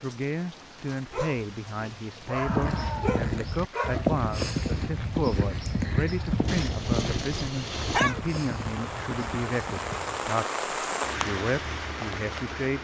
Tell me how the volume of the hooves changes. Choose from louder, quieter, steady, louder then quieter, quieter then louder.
quieter.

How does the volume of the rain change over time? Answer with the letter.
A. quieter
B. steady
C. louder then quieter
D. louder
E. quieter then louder
D.